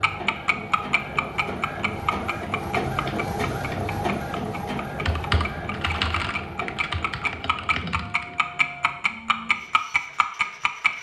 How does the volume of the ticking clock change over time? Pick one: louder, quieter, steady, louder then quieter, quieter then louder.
quieter then louder.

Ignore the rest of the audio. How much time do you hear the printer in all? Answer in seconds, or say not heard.
11 s.